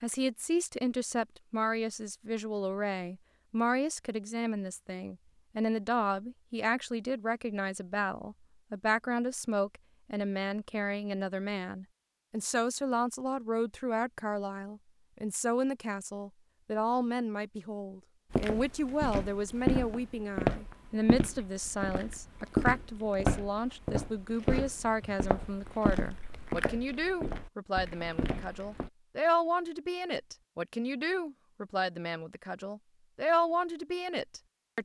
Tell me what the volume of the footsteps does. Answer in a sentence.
The volume of the footsteps goes down.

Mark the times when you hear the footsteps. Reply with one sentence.
The footsteps can be heard from 18.3 to 28.9 s.